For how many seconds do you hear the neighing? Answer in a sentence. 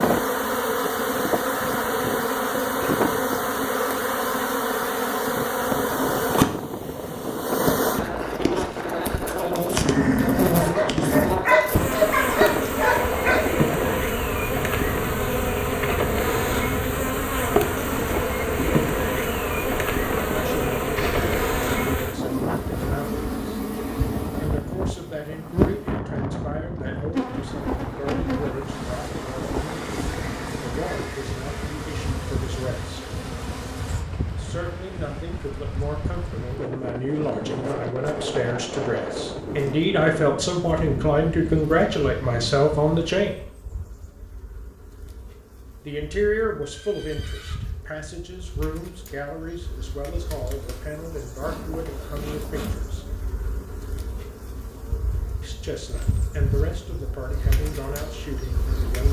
You can hear the neighing for 3 seconds altogether.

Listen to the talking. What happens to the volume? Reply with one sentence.
The volume of the talking goes up, then down.